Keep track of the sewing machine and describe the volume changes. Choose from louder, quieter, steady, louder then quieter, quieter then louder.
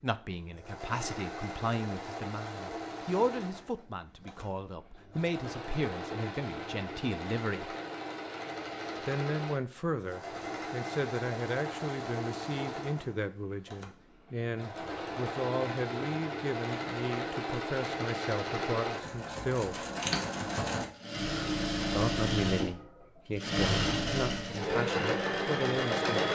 louder.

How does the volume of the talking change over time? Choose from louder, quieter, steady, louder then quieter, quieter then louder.
steady.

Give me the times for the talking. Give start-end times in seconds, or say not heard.
0.0-7.8, 9.0-19.9, 21.9-26.2.